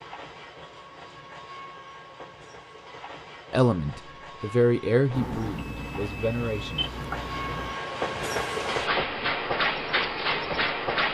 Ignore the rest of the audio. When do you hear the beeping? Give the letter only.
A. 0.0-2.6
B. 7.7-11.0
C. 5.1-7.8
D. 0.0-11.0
C.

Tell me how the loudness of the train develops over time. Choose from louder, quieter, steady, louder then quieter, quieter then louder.
louder.